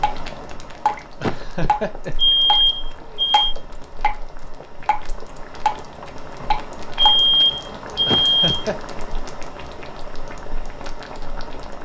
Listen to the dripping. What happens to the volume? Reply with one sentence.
The volume of the dripping goes down, then up.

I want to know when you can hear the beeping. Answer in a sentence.
The beeping can be heard from 2.1 to 3.5 s and from 7.0 to 8.7 s.